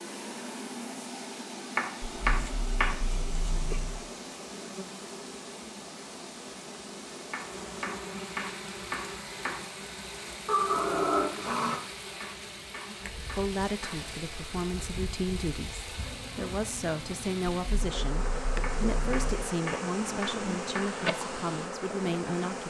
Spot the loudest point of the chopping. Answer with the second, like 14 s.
2 s.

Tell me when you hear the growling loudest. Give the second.
11 s.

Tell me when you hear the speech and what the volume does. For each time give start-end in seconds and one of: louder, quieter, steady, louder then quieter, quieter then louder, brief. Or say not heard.
13.2-22.6 steady.